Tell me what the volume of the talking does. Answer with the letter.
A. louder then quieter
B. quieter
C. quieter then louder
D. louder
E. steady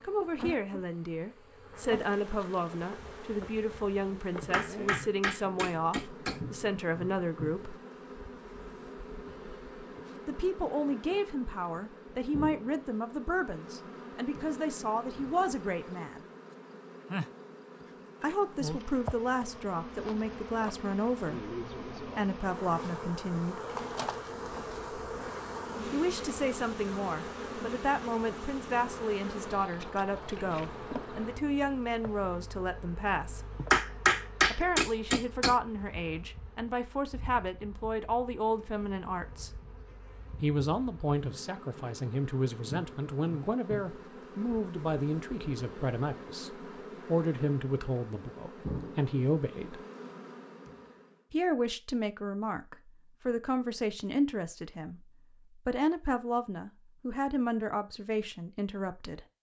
E.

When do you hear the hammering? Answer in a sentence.
The hammering can be heard from 4.4 to 6.4 s and from 33.5 to 35.5 s.